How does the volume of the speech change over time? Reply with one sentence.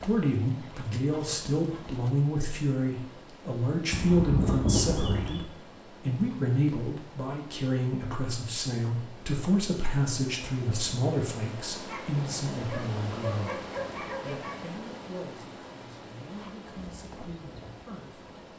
The loudness of the speech goes down.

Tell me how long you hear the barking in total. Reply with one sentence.
You can hear the barking for 4 seconds altogether.